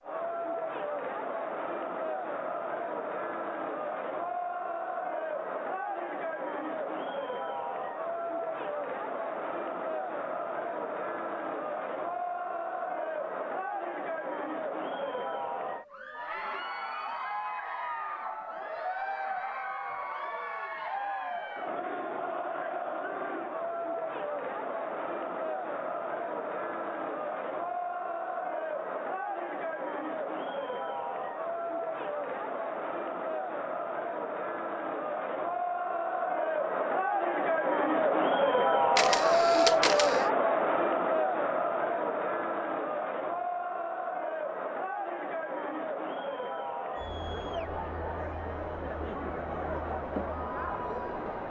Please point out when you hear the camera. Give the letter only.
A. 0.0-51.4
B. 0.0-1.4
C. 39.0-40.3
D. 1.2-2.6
C.